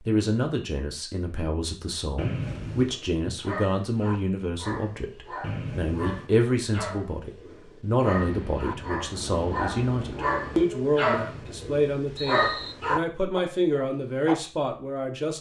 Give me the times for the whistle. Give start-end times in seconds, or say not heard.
2.1-3.0, 5.4-6.3, 11.1-12.8.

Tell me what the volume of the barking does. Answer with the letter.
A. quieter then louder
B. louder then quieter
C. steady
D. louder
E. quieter
D.